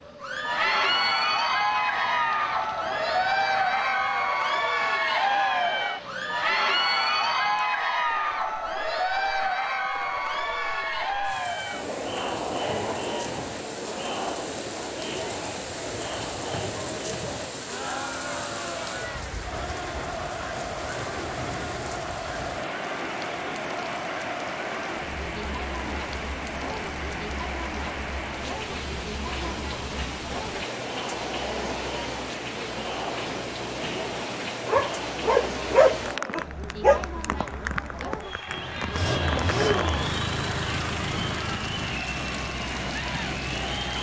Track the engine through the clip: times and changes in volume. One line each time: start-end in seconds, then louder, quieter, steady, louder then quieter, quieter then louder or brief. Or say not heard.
38.5-43.9 quieter.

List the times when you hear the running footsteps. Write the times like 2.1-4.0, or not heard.
not heard.